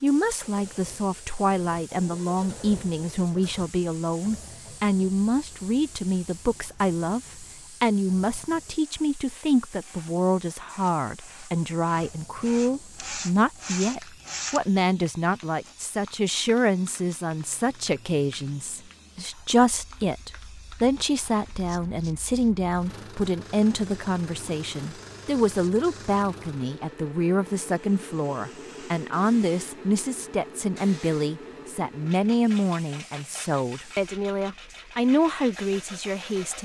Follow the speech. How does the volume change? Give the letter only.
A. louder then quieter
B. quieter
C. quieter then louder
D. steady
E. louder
D.